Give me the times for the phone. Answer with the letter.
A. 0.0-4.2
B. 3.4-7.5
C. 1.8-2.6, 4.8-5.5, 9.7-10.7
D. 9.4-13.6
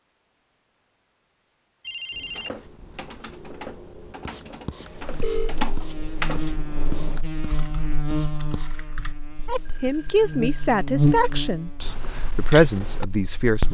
C.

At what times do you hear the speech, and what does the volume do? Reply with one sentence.
You can hear the speech from 9.4 to 13.6 s, getting quieter then louder.